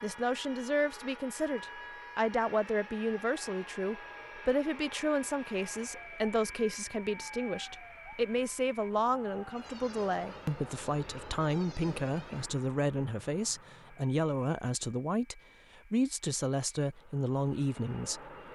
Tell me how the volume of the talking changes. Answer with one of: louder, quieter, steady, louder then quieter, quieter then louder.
steady.